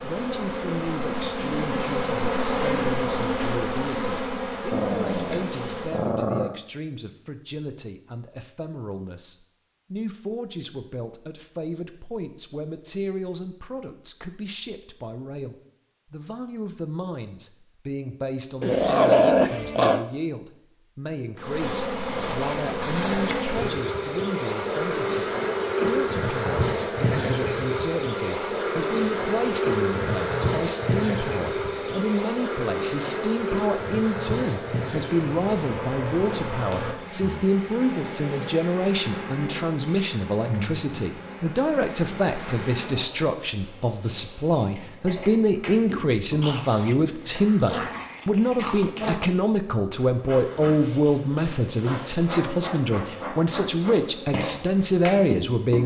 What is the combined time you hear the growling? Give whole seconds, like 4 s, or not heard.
6 s.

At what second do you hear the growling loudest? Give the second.
19 s.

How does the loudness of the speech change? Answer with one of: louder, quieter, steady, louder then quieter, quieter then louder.
louder.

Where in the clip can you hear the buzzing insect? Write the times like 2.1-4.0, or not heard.
0.0-6.1, 21.4-55.8.